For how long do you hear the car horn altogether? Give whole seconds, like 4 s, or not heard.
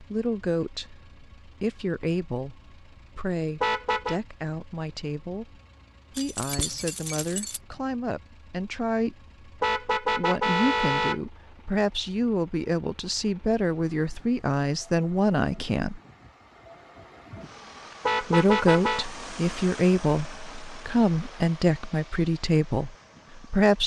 3 s.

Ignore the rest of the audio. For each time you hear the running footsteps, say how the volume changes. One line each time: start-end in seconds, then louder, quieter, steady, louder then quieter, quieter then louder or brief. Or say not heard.
not heard.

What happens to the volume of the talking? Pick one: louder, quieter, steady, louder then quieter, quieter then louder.
louder.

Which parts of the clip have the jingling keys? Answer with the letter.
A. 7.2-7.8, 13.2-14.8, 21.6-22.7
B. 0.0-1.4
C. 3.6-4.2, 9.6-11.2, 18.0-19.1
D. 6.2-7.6
D.